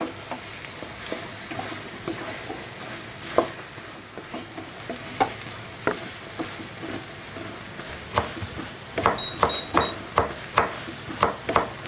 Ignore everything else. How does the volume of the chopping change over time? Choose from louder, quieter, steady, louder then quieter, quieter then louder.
louder.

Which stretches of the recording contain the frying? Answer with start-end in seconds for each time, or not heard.
0.0-11.8.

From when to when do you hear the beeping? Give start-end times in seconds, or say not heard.
9.2-9.9.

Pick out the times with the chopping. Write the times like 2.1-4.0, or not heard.
7.8-11.8.